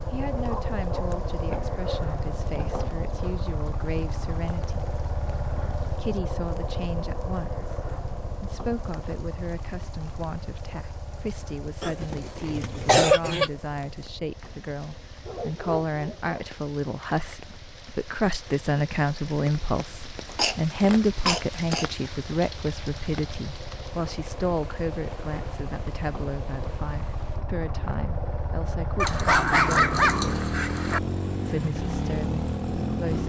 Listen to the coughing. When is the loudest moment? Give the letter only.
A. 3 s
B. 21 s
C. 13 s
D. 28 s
C.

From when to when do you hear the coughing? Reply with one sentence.
The coughing can be heard from 11.8 to 13.5 s and from 20.4 to 21.9 s.